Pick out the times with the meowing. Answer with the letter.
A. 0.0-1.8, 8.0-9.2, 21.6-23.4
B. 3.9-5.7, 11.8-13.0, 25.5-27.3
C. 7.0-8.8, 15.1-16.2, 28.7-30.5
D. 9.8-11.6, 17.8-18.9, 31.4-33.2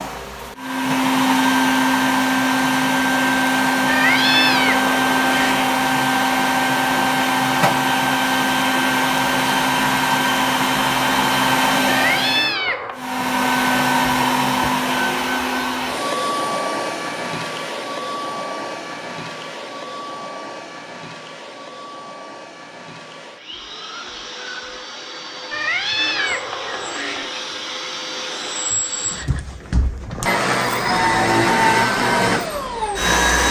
B.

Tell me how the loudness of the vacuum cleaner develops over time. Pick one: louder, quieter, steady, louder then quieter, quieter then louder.
quieter then louder.